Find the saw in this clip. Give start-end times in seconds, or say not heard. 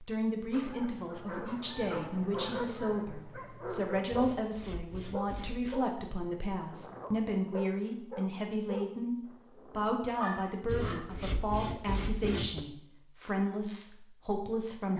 4.1-5.8, 10.7-12.7.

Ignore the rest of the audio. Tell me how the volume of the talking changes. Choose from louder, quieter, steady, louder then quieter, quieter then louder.
steady.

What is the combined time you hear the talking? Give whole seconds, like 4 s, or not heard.
15 s.